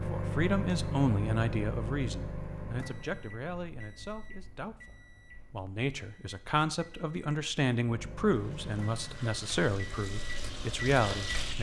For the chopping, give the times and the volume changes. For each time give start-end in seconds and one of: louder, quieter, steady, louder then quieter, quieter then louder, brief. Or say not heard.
not heard.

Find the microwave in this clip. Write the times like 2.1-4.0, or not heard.
0.0-11.5.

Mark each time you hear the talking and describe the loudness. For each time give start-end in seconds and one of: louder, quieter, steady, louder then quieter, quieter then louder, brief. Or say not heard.
0.0-11.5 quieter then louder.